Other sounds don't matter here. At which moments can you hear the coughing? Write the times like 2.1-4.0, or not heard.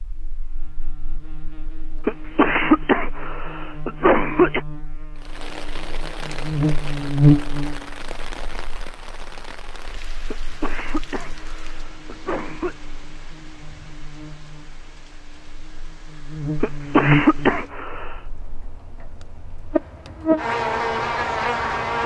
2.0-4.6, 10.3-12.8, 16.6-18.1.